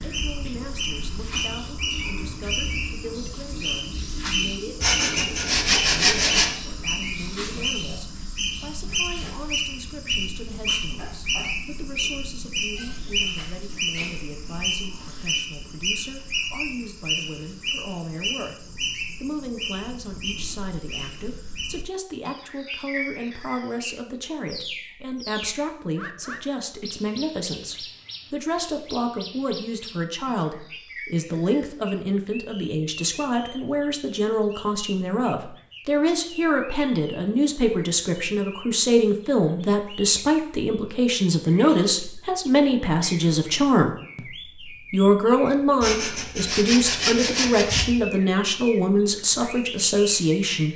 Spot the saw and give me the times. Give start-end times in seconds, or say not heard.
4.8-6.5, 45.8-48.0.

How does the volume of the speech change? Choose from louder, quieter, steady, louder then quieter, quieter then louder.
louder.